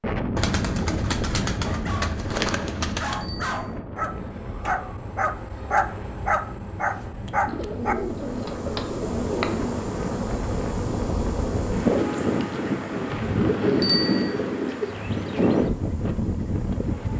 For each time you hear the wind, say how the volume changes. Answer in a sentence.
The wind can be heard from 0.0 to 17.1 s, getting quieter then louder.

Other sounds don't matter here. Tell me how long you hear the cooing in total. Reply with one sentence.
You can hear the cooing for 7 seconds altogether.